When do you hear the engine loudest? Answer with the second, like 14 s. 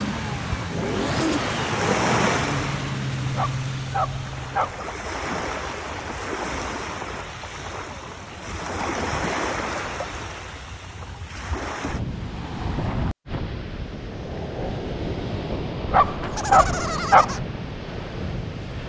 1 s.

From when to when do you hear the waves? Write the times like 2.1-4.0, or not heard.
0.0-18.8.